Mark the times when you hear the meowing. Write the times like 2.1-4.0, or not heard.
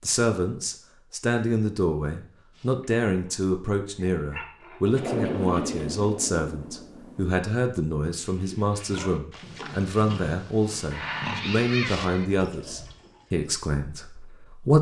10.9-12.2.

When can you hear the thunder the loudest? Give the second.
5 s.